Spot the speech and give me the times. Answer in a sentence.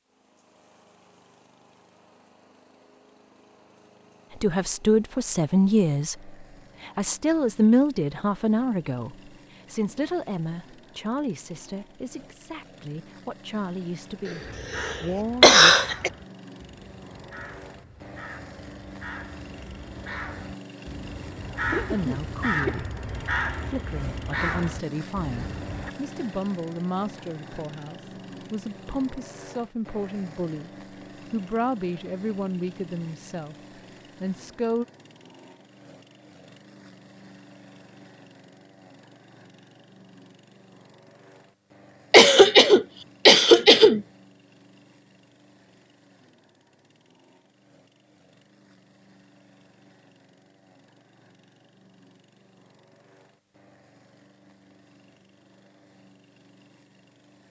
You can hear the speech from 4.4 to 15.8 s, from 21.9 to 23.0 s, from 23.6 to 30.7 s, from 31.3 to 33.5 s and from 34.2 to 34.9 s.